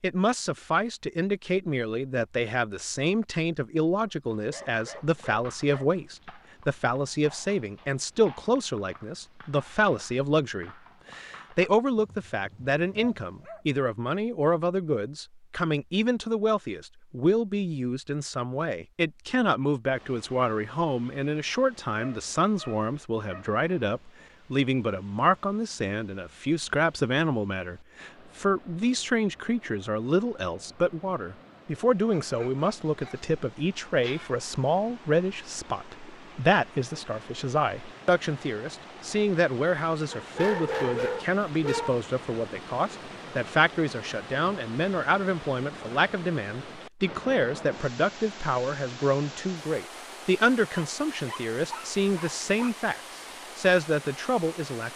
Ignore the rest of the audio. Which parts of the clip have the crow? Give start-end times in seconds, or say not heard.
not heard.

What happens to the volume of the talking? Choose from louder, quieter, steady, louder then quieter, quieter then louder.
steady.